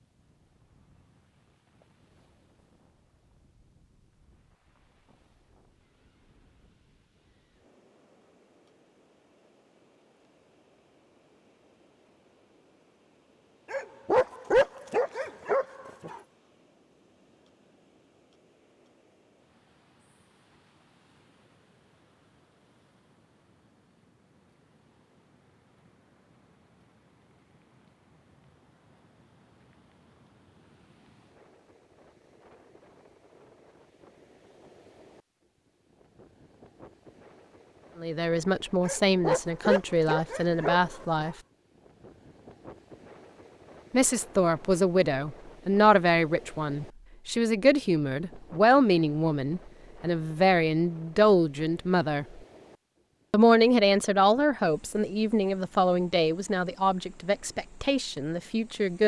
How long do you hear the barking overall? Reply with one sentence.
The barking can be heard for 5 seconds in total.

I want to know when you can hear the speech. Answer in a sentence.
You can hear the speech from 38.0 to 41.4 s, from 43.9 to 52.2 s and from 53.3 to 59.0 s.